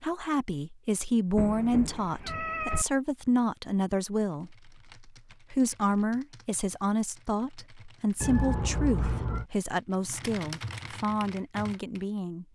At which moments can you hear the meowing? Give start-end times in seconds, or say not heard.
1.4-2.9, 8.2-9.4.